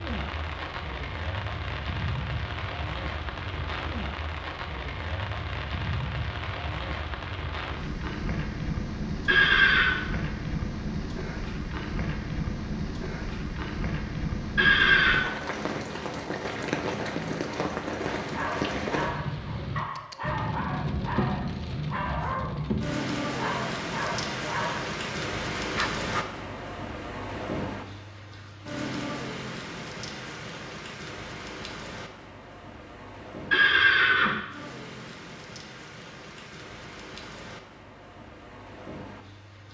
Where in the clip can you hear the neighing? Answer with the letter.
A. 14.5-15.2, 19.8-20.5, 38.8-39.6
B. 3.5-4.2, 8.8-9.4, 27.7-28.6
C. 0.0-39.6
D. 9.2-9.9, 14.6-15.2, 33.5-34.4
D.